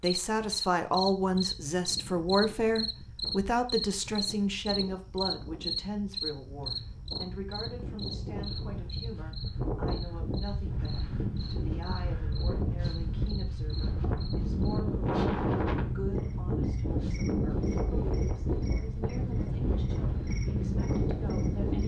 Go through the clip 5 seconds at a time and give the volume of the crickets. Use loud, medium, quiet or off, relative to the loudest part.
loud, loud, quiet, quiet, quiet.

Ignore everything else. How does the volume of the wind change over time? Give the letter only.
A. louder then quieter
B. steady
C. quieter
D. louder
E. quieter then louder
D.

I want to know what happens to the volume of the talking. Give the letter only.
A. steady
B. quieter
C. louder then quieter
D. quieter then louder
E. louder
B.